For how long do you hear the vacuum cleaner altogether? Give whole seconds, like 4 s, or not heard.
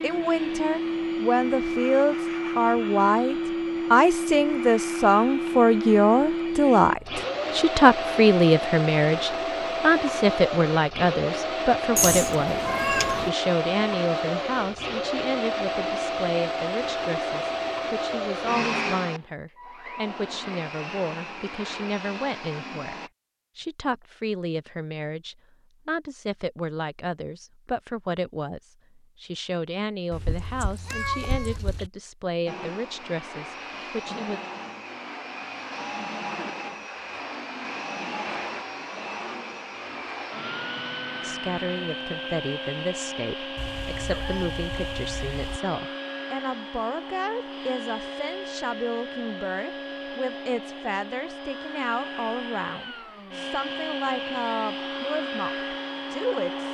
47 s.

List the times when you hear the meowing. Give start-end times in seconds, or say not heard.
11.9-13.3, 30.1-31.9, 43.5-45.6.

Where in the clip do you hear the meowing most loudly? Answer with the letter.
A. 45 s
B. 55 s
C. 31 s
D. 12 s
D.